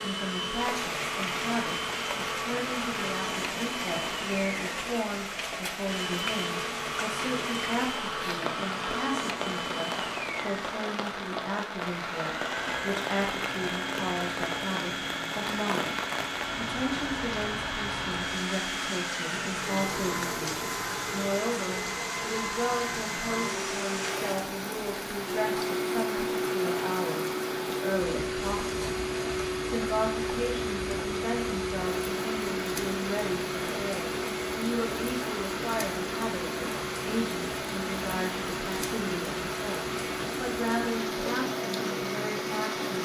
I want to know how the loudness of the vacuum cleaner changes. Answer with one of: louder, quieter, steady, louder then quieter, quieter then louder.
steady.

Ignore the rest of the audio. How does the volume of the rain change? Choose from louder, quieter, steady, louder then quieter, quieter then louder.
steady.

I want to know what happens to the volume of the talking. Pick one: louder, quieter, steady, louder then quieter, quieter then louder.
steady.